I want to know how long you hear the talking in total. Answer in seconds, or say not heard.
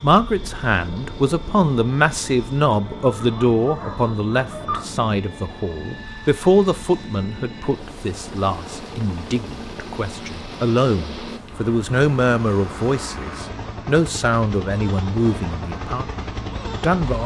17 s.